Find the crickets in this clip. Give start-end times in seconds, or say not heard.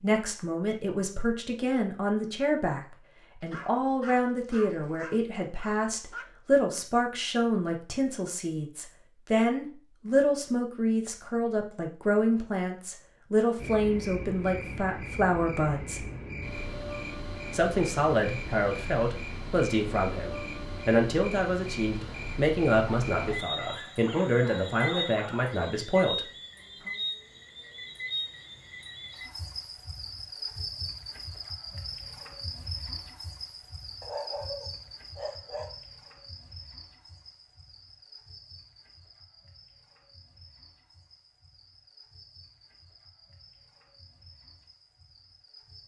13.6-45.8.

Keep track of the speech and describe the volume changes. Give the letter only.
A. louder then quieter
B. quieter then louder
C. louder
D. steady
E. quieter
D.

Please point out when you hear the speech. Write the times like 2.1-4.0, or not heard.
0.0-16.1, 17.5-26.2.